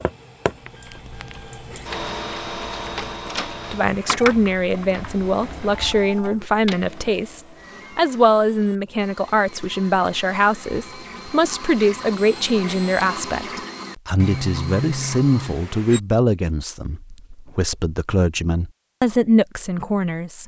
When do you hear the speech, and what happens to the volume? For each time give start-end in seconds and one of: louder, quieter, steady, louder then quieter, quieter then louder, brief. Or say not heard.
3.7-20.4 steady.